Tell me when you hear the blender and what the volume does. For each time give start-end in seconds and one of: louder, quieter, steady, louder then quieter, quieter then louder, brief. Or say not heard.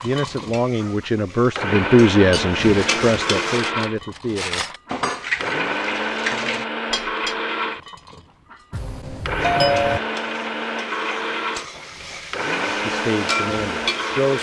0.0-14.3 steady.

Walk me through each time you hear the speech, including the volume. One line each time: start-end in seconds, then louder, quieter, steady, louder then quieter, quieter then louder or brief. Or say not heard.
0.0-4.7 louder then quieter
12.7-14.3 brief.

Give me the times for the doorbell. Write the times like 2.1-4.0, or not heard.
8.7-10.0.